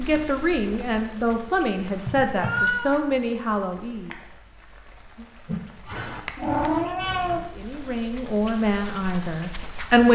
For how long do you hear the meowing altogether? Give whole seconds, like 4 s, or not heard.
3 s.